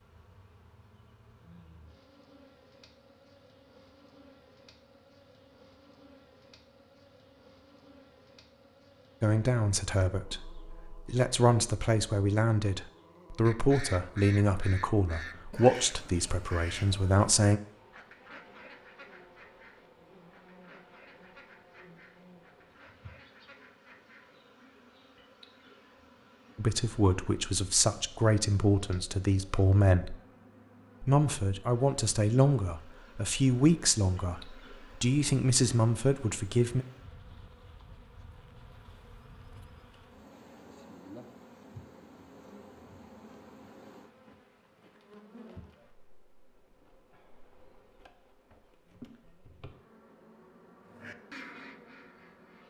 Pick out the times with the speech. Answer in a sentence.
You can hear the speech from 9.2 to 17.6 s, from 26.6 to 30.1 s and from 31.0 to 36.9 s.